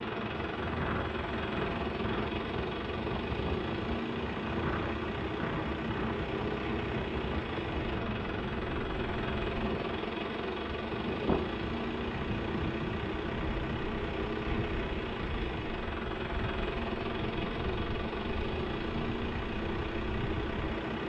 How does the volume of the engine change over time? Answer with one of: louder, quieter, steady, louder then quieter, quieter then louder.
steady.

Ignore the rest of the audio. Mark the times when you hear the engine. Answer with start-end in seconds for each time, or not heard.
0.0-21.0.